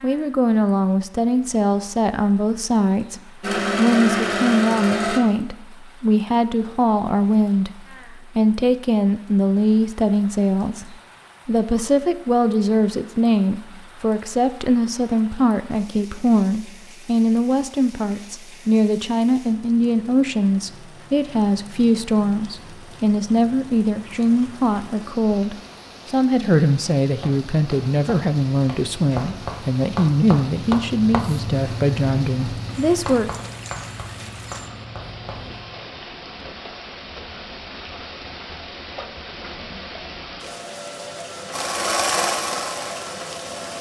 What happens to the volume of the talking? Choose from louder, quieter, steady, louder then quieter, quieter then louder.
steady.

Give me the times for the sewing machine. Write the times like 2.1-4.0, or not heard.
3.4-5.2, 41.5-43.7.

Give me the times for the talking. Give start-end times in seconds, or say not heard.
0.0-33.3.